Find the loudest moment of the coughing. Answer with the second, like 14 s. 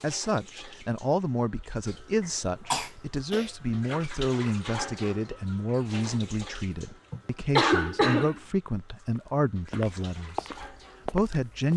8 s.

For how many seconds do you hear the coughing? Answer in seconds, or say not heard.
2 s.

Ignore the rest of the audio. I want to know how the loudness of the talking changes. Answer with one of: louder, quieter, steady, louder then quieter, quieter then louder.
steady.